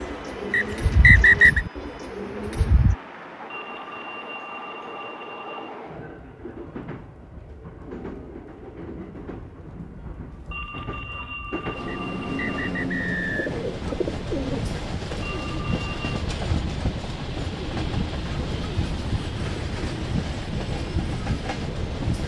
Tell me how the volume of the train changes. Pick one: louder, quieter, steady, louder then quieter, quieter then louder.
louder.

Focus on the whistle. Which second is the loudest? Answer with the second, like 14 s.
1 s.